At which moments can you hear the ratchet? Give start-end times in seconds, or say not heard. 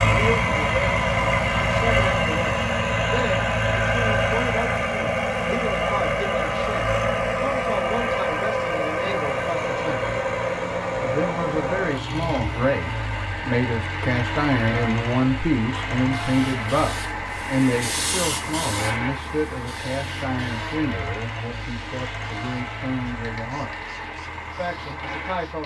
not heard.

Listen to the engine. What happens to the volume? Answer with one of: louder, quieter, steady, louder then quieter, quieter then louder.
quieter.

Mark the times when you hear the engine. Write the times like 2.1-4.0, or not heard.
0.0-25.6.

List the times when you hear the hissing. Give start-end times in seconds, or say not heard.
16.1-25.6.